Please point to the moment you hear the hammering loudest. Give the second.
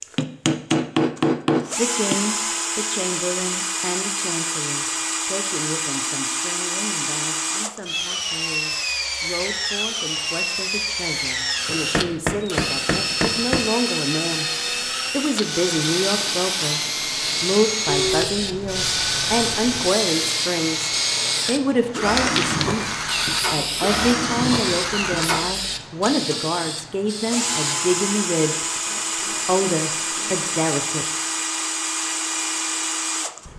1 s.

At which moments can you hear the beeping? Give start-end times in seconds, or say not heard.
17.9-19.9.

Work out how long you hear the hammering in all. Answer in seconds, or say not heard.
6 s.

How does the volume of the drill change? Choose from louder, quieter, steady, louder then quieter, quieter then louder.
steady.